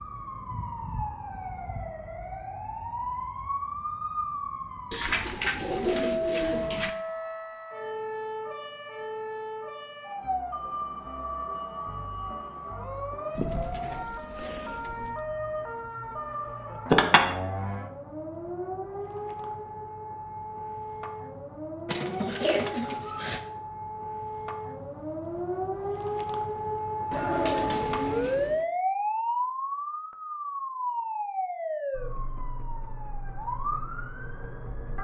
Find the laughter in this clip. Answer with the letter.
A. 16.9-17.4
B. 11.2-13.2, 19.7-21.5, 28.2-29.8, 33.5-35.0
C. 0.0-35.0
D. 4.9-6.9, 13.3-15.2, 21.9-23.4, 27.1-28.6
A.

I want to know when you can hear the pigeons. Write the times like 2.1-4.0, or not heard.
4.9-6.9, 13.3-15.2, 21.9-23.4, 27.1-28.6.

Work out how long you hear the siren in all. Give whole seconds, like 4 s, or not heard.
35 s.